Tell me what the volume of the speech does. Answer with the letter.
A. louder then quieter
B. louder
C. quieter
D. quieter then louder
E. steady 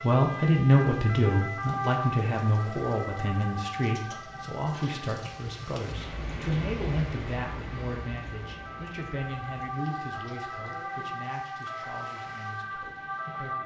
C.